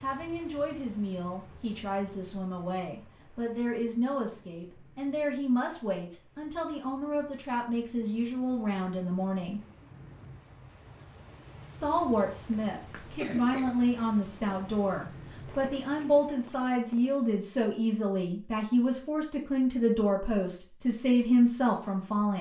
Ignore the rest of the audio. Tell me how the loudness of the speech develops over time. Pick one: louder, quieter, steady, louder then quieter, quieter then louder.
louder.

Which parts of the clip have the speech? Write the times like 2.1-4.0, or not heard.
0.0-9.6, 11.8-22.3.